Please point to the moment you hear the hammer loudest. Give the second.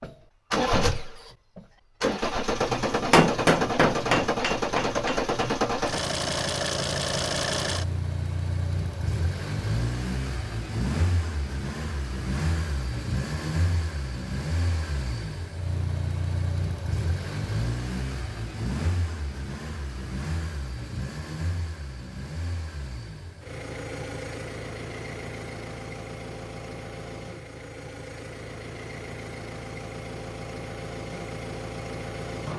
3 s.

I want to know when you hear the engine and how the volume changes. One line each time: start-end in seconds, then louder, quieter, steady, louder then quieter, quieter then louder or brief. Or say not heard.
0.0-32.5 quieter.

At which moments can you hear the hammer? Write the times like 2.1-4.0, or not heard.
2.9-5.3.